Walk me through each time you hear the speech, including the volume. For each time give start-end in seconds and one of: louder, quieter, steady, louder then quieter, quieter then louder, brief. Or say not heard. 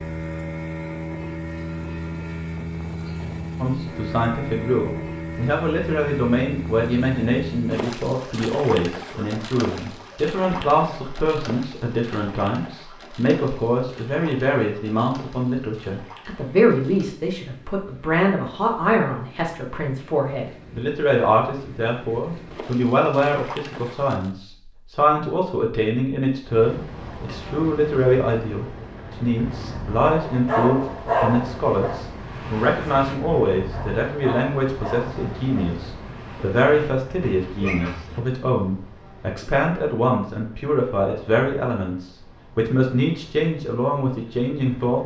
3.6-45.0 steady.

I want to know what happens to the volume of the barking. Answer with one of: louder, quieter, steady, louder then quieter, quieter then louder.
quieter.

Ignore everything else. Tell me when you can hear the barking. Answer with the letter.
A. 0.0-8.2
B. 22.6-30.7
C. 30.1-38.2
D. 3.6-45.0
C.